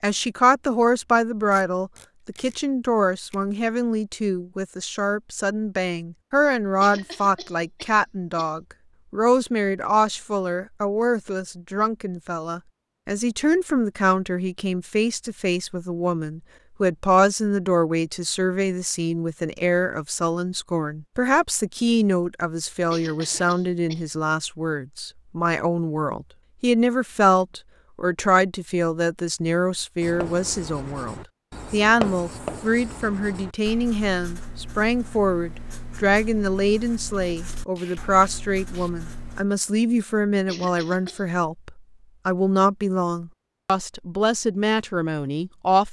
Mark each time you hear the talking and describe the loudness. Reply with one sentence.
You can hear the talking from 0.0 to 45.8 s, at a steady volume.